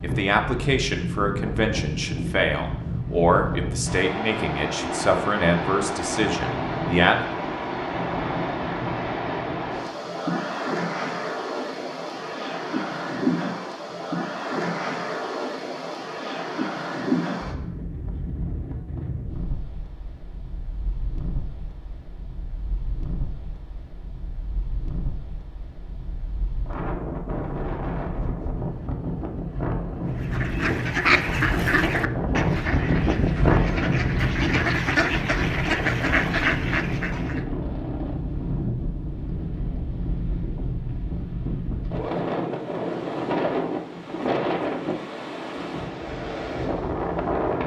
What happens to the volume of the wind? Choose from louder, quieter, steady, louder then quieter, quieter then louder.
quieter then louder.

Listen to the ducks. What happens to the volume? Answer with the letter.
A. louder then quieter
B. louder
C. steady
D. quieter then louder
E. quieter
D.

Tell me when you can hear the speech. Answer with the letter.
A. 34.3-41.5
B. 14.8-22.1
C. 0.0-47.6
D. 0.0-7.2
D.